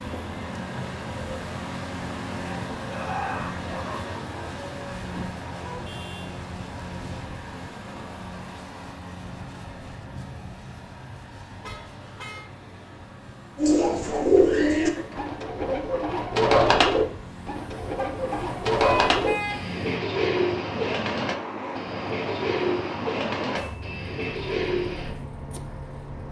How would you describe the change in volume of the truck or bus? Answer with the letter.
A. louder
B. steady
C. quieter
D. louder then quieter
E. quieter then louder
E.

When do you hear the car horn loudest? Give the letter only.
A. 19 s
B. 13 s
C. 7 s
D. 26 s
A.